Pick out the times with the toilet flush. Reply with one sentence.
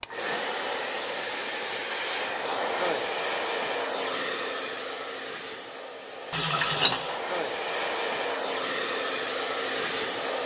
You can hear the toilet flush from 6.3 to 7.2 s.